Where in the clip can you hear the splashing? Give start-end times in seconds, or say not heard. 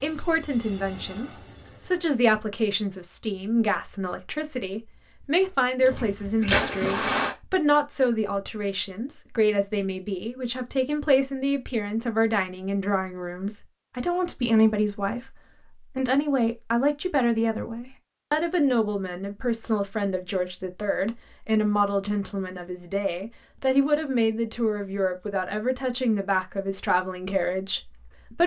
5.8-7.3.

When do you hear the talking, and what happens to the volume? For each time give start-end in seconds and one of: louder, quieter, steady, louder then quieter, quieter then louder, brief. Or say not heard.
0.0-28.4 steady.